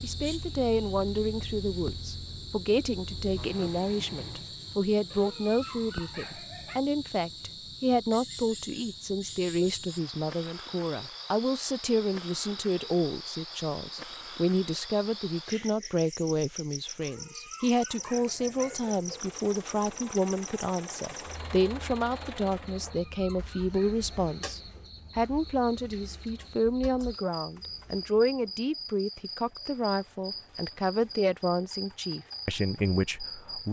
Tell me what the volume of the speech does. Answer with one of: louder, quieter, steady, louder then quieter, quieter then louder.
steady.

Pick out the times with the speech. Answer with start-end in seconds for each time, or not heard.
0.0-33.6.